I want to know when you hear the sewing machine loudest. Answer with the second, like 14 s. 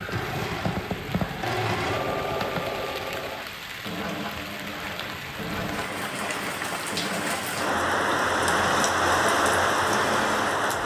2 s.